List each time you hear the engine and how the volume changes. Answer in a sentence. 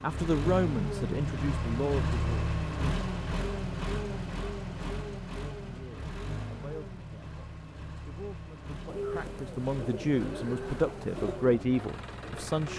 You can hear the engine from 0.0 to 12.7 s, getting quieter.